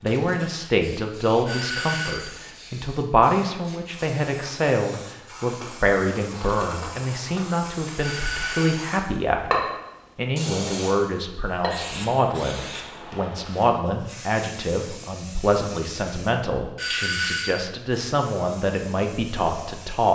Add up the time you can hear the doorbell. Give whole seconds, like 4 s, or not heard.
3 s.